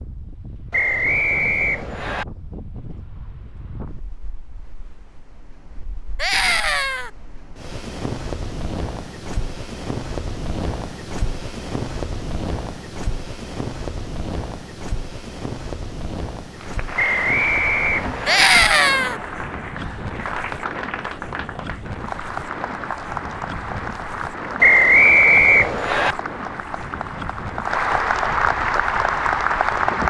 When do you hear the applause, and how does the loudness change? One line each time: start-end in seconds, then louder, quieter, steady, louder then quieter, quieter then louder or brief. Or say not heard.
16.6-30.0 louder.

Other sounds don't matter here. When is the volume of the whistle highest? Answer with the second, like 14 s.
25 s.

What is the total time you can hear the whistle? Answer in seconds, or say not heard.
5 s.